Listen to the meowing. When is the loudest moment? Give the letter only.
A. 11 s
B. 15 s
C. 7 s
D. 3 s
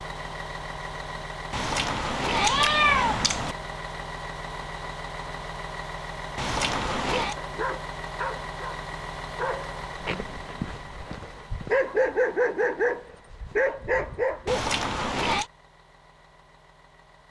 D.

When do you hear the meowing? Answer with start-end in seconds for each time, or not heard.
1.5-3.5, 6.3-7.3, 14.4-15.4.